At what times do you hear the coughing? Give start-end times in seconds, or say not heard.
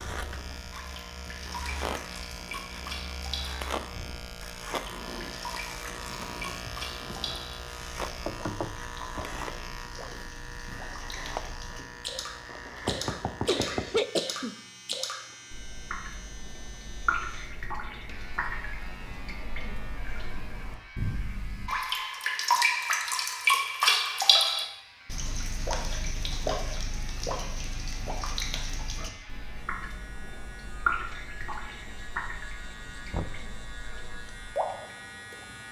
13.4-14.9.